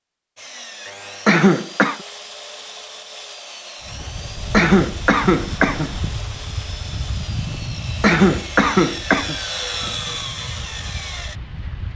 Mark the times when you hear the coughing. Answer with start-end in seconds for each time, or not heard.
1.2-2.0, 4.5-6.0, 8.0-9.3.